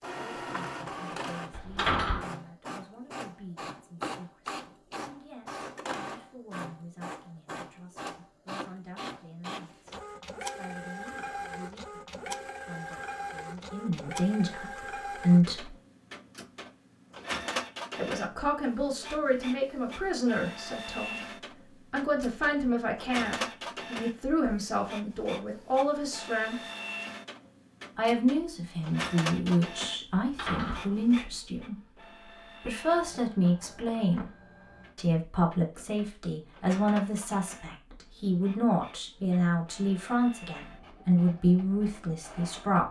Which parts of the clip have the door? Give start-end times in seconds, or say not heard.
1.5-2.3, 30.1-31.2.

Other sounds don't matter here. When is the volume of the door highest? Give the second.
2 s.